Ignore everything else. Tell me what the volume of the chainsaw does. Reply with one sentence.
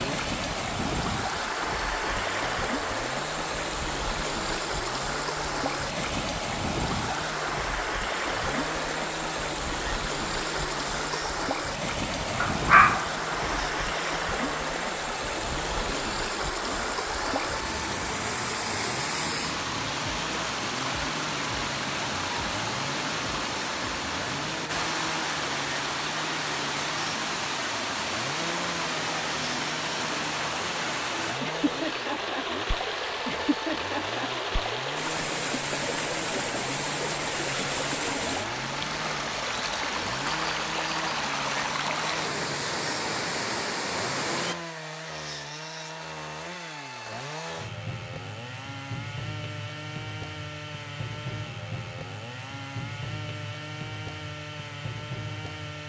The loudness of the chainsaw stays about the same.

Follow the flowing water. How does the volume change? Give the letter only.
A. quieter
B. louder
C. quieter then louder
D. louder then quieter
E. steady
E.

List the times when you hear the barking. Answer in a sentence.
The barking can be heard from 12.4 to 13.7 s.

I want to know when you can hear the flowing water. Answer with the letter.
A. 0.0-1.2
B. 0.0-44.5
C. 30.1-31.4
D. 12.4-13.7
B.